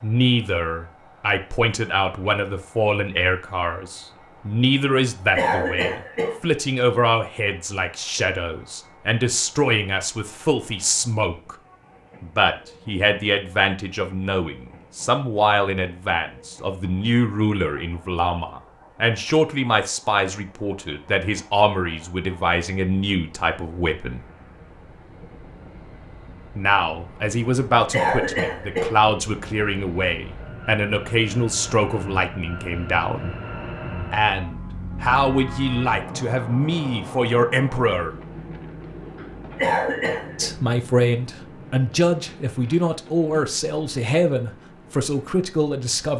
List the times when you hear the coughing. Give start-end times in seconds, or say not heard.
5.3-6.3, 27.9-28.9, 39.5-40.5.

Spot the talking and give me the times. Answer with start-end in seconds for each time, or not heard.
0.0-11.6, 12.2-24.2, 26.6-33.3, 34.1-38.1, 40.4-46.1.